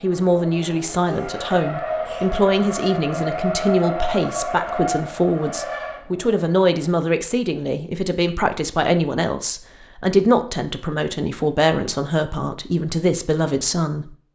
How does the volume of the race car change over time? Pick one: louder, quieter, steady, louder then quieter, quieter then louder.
louder then quieter.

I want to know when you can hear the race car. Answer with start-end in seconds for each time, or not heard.
0.0-6.9.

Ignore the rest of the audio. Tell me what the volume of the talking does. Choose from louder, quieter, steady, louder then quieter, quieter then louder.
steady.